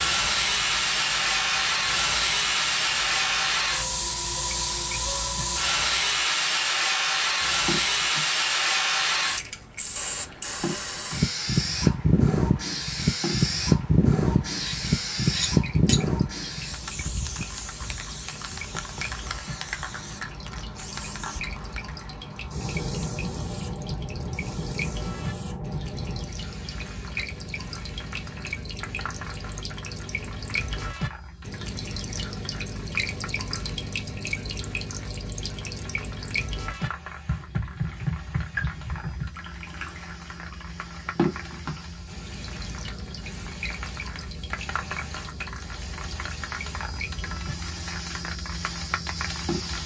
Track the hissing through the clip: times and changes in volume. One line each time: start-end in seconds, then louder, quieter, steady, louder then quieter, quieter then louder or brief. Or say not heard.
0.0-49.8 quieter then louder.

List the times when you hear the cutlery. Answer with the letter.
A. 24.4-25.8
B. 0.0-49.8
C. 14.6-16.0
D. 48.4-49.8
C.